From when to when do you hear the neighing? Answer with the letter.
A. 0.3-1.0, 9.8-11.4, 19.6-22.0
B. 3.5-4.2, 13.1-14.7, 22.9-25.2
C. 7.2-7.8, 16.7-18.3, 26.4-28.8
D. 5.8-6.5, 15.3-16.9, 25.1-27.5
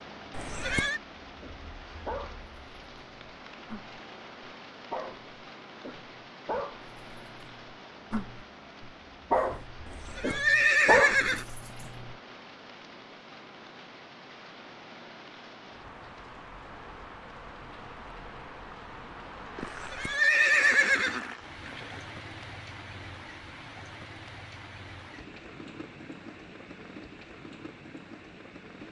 A.